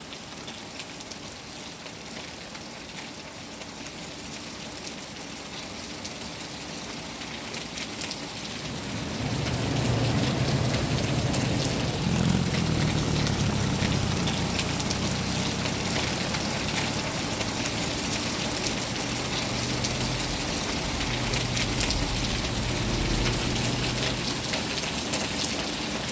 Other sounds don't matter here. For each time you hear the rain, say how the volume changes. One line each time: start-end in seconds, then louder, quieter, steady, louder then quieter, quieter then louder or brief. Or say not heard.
0.0-26.0 louder.